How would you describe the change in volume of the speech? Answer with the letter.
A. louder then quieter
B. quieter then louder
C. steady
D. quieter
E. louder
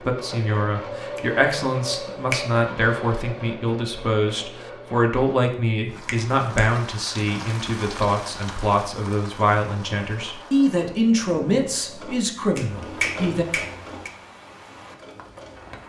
C.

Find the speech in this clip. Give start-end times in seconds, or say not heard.
0.1-13.4.